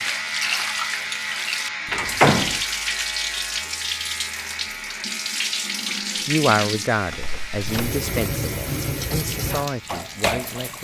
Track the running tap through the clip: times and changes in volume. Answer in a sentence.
The running tap can be heard from 0.0 to 10.7 s, at a steady volume.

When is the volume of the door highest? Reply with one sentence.
The volume of the door peaks at 2 seconds.